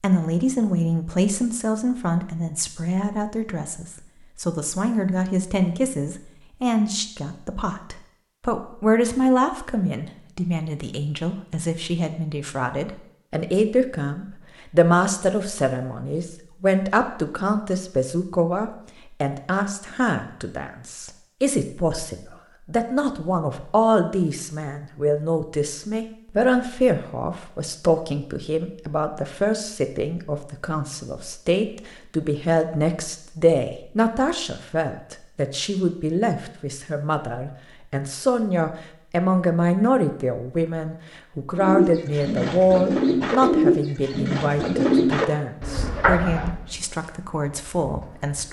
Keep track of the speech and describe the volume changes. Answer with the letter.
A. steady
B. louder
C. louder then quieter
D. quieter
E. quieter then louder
A.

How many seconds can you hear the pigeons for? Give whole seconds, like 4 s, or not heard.
7 s.